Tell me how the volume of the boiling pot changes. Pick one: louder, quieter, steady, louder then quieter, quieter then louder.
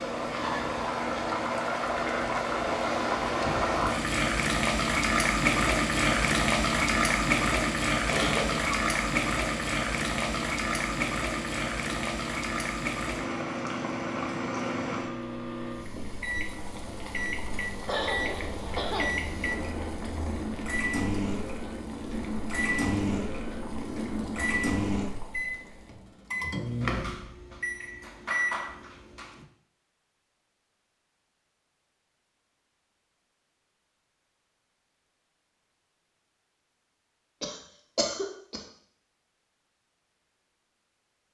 quieter.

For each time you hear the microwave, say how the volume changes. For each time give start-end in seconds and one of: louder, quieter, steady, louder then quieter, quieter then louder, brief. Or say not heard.
0.0-29.4 louder.